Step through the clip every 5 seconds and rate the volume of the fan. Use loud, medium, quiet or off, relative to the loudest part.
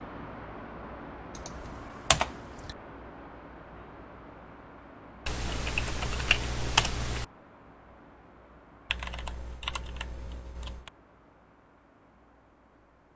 loud, medium, quiet.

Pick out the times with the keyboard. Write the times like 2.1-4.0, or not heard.
1.4-2.8, 5.2-7.2, 8.9-10.9.